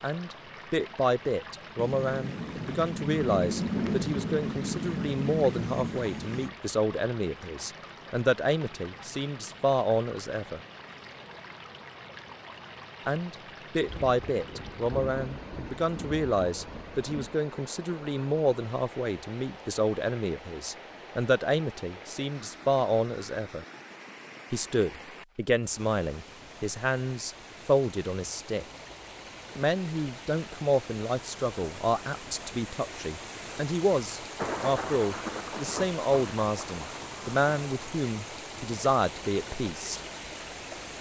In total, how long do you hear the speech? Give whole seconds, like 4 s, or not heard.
36 s.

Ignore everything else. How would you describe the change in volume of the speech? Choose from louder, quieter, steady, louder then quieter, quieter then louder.
steady.